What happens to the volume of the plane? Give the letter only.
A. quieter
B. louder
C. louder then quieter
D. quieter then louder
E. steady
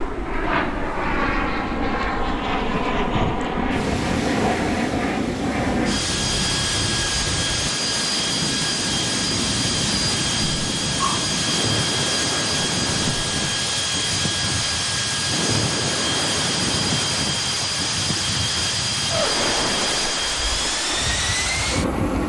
E.